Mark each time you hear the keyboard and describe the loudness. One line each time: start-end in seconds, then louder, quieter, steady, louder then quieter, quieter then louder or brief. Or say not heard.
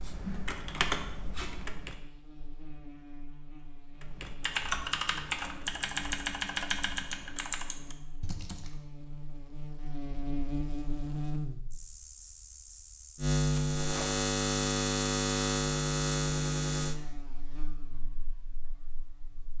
0.0-2.0 brief
4.0-8.7 quieter.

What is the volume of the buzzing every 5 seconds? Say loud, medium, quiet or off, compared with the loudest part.
quiet, quiet, loud, loud.